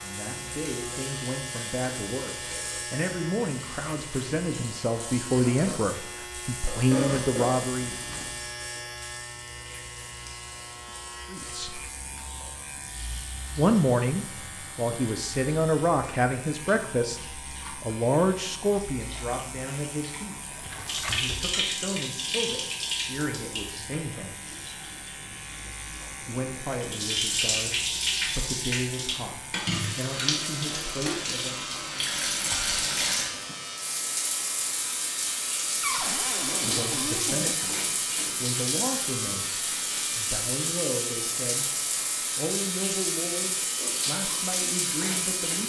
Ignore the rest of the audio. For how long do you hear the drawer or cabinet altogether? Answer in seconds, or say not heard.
4 s.